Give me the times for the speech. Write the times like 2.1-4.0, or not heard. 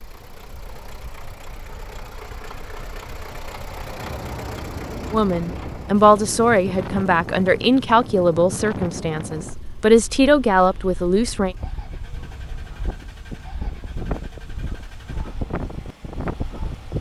5.1-11.6.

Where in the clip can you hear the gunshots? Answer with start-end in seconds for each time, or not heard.
not heard.